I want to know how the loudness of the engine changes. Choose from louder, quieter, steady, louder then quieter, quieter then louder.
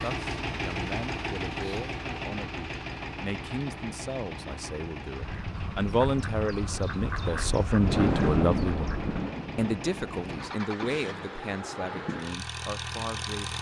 quieter then louder.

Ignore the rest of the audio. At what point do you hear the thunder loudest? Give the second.
8 s.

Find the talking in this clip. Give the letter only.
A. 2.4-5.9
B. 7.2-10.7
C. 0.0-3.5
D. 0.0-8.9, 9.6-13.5
D.